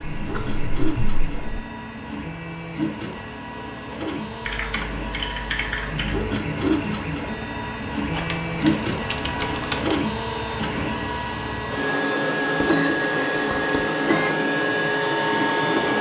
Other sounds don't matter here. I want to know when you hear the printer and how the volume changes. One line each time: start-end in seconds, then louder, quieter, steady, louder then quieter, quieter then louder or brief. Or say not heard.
0.0-15.9 louder.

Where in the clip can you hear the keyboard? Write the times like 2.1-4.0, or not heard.
0.0-1.6, 4.4-6.3, 8.1-9.9, 12.6-13.8.